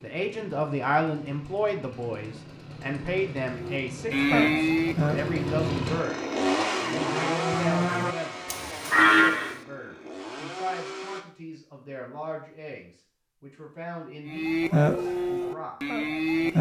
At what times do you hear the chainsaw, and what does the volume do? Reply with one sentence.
The chainsaw can be heard from 0.0 to 11.2 s, getting louder then quieter.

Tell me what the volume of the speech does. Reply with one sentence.
The volume of the speech goes down.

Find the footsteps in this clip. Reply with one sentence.
The footsteps can't be heard in this clip.